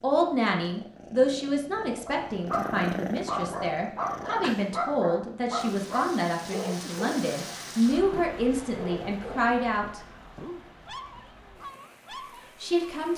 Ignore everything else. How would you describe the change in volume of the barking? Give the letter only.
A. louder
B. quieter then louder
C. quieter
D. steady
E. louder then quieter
C.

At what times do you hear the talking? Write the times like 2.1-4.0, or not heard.
0.0-10.0, 12.6-13.1.